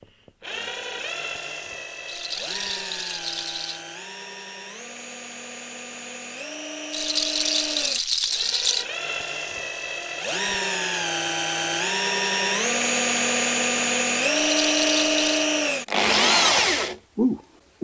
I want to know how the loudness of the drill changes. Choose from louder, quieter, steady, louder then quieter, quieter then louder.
louder.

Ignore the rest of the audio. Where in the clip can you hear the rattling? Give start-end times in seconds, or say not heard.
2.0-3.9, 6.9-8.8, 14.3-15.5.